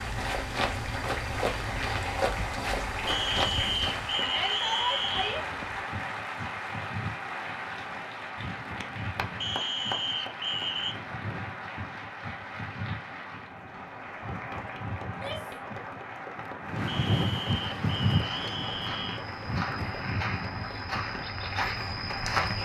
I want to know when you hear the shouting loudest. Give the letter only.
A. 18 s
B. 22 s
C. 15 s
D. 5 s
D.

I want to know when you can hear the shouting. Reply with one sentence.
The shouting can be heard from 4.2 to 5.4 s and from 15.1 to 15.6 s.